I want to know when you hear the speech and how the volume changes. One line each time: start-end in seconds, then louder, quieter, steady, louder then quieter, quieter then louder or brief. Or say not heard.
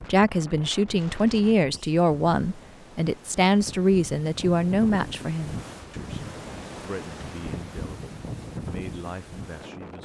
0.1-10.0 quieter.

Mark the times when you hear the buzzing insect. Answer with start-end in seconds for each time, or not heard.
not heard.